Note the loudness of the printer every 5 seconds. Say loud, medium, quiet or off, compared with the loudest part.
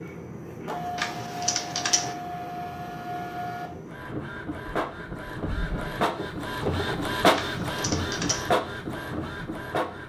medium, loud.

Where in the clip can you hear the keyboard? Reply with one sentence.
The keyboard can be heard from 0.9 to 2.1 s and from 7.3 to 8.5 s.